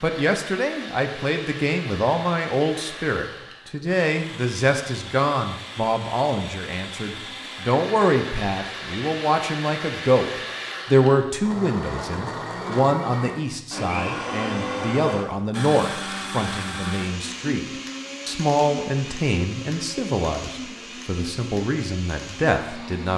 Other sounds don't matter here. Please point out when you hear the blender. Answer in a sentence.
The blender can be heard from 0.0 to 23.1 s.